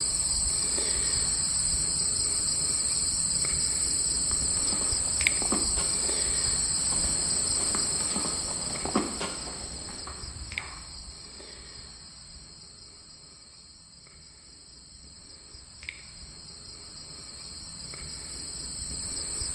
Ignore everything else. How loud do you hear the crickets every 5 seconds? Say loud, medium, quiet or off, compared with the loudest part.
loud, loud, quiet, medium.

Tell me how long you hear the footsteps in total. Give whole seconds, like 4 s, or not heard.
7 s.